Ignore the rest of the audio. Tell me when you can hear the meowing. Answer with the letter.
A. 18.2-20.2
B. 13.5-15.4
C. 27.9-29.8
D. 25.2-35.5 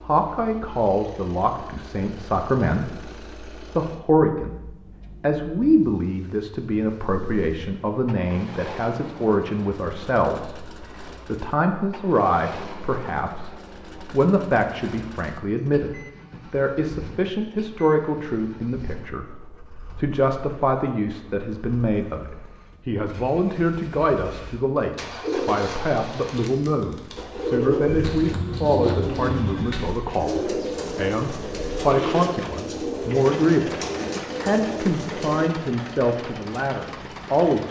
C.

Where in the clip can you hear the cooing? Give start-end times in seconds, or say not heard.
25.2-35.5.